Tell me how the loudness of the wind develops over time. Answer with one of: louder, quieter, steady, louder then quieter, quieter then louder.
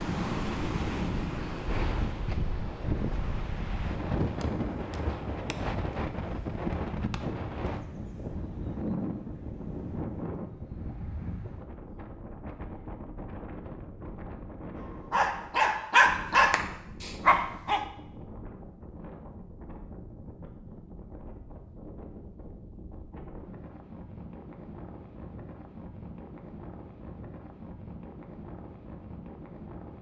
quieter.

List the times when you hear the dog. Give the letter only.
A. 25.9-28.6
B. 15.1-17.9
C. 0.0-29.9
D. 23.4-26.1
B.